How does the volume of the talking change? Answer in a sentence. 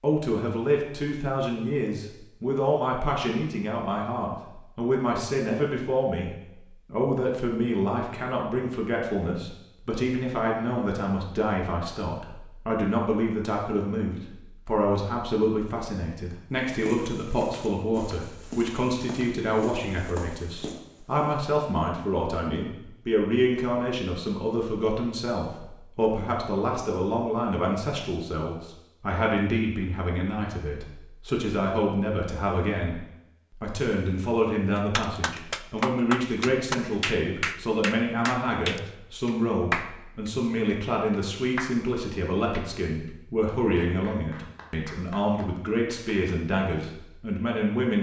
The loudness of the talking stays about the same.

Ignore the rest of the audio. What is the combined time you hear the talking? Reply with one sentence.
The talking can be heard for 48 seconds in total.